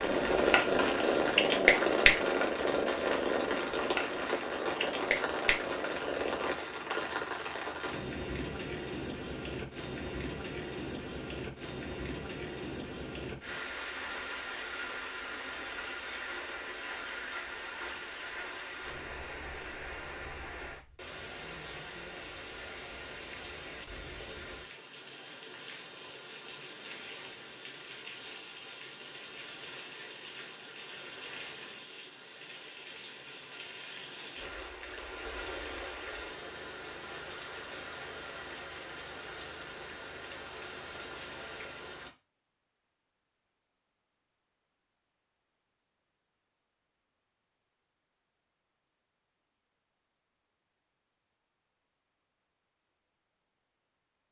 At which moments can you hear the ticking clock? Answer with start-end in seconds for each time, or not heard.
not heard.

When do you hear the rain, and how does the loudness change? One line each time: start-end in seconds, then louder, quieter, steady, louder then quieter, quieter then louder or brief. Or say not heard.
0.0-42.1 quieter.